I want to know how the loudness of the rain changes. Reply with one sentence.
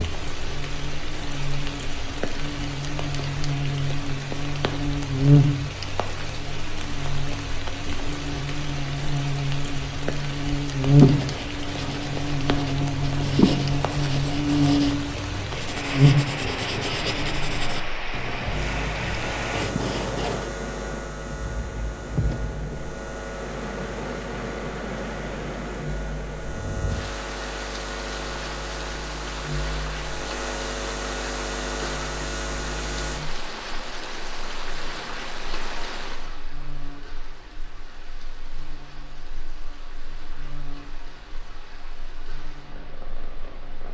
The volume of the rain goes down.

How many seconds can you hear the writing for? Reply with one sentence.
The writing can be heard for 10 seconds in total.